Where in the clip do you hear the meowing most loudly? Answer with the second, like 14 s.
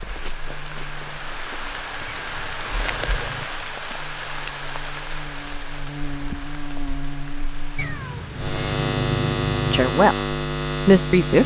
9 s.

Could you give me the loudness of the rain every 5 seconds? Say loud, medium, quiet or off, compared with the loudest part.
loud, medium, off.